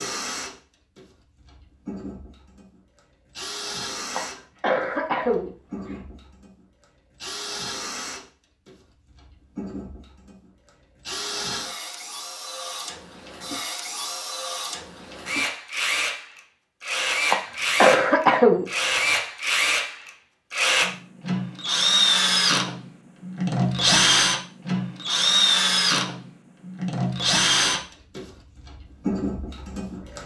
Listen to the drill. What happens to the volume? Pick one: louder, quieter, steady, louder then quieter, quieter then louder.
louder.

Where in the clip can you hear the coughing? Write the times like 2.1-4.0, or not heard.
4.2-6.0, 17.3-19.1.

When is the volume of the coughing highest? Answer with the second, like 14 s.
18 s.